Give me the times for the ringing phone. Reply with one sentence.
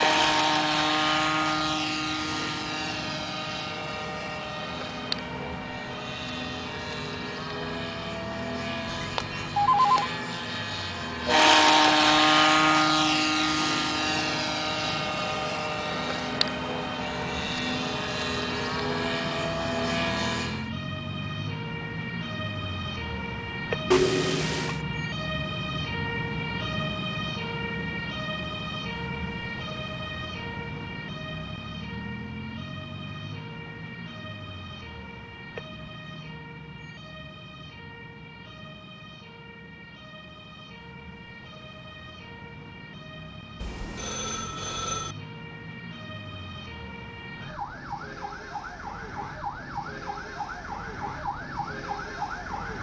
You can hear the ringing phone from 8.9 to 10.1 s, from 23.9 to 24.9 s and from 43.6 to 45.1 s.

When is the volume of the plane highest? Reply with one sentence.
The loudest moment of the plane is at 12 seconds.